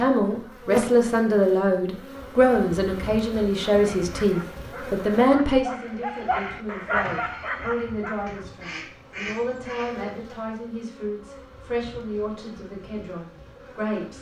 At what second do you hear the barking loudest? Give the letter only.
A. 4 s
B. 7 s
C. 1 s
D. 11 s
B.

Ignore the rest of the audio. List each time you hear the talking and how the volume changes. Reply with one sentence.
The talking can be heard from 0.0 to 14.1 s, getting quieter.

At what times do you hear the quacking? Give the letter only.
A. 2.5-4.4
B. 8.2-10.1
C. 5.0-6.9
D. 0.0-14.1
B.